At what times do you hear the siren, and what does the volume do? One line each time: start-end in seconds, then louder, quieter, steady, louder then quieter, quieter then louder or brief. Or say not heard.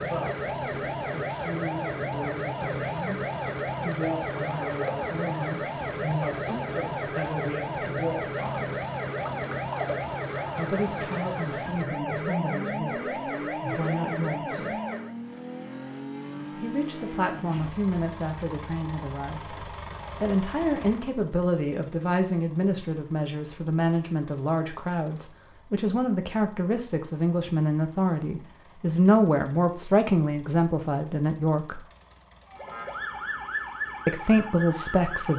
0.0-15.2 steady
32.5-35.3 brief.